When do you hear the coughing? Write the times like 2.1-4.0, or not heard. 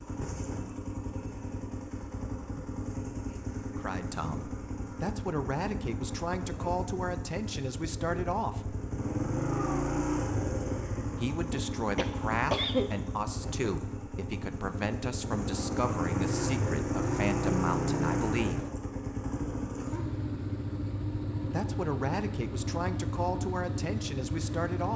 11.5-12.9.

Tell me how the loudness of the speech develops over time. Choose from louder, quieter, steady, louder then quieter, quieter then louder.
steady.